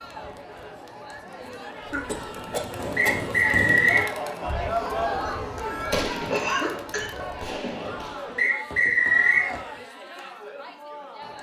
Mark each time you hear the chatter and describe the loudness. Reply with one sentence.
You can hear the chatter from 0.0 to 11.3 s, getting louder then quieter.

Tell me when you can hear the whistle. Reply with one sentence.
You can hear the whistle from 3.0 to 4.1 s and from 8.3 to 9.5 s.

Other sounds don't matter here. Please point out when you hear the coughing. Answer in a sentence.
The coughing can be heard from 1.9 to 3.3 s and from 6.3 to 7.1 s.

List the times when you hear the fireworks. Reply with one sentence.
The fireworks can be heard from 2.0 to 9.8 s.